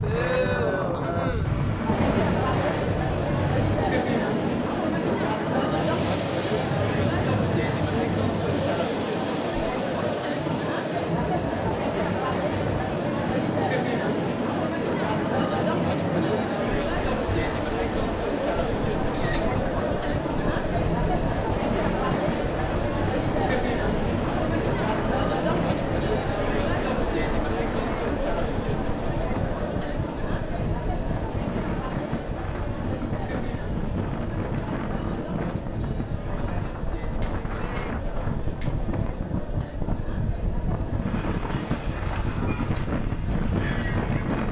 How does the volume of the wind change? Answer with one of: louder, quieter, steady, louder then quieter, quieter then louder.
steady.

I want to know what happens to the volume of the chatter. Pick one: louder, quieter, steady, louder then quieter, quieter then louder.
quieter.